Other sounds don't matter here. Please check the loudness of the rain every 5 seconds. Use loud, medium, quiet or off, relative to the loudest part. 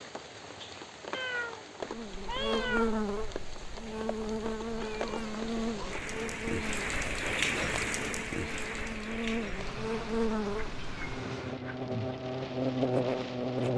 medium, loud, medium.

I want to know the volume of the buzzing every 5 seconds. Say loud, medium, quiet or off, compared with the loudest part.
loud, medium, loud.